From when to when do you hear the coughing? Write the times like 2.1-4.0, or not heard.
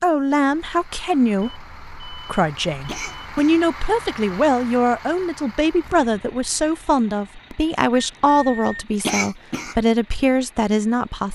2.9-3.6, 9.0-9.8.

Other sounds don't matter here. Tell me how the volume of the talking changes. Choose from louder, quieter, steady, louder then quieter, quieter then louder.
steady.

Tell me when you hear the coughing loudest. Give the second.
9 s.